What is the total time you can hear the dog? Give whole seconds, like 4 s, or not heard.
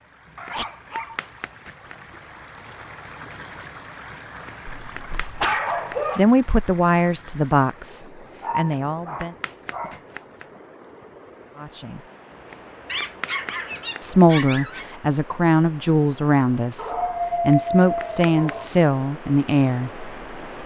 8 s.